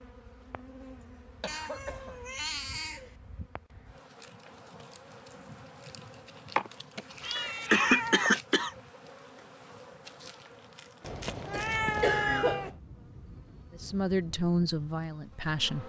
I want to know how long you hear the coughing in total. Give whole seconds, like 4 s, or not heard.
4 s.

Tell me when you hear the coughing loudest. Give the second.
8 s.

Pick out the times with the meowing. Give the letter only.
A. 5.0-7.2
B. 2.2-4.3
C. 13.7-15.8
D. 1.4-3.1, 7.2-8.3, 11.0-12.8
D.